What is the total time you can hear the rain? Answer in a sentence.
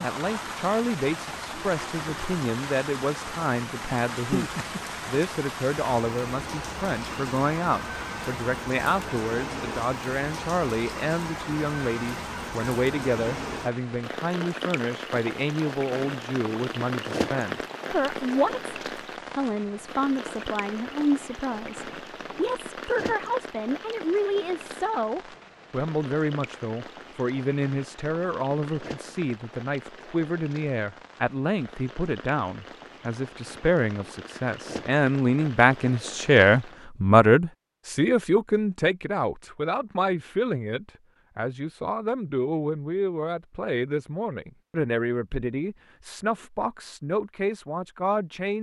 The rain can be heard for 37 seconds in total.